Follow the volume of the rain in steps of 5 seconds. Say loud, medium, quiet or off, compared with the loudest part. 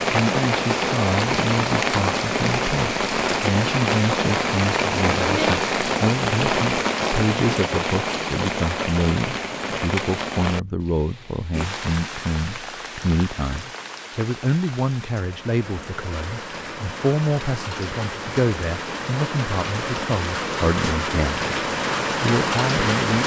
loud, loud, medium, medium, loud.